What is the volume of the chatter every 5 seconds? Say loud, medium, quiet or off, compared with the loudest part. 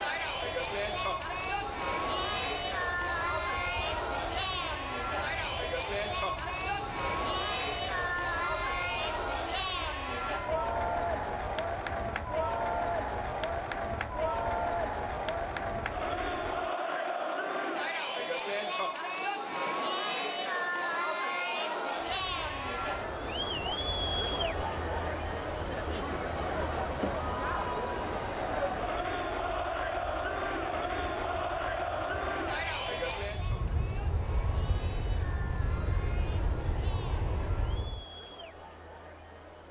loud, loud, loud, loud, loud, loud, loud, quiet.